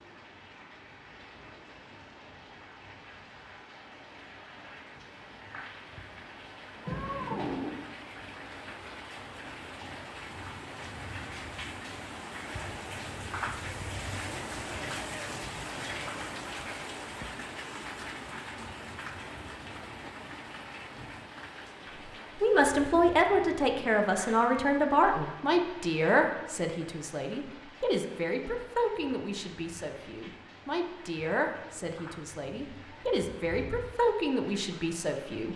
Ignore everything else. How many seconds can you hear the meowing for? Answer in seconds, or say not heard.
3 s.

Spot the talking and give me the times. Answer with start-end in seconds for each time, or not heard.
22.4-35.5.